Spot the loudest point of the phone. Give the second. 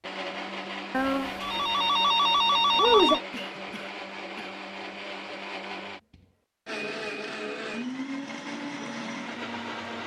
3 s.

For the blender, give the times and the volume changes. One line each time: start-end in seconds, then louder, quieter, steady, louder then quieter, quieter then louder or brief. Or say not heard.
0.0-10.0 steady.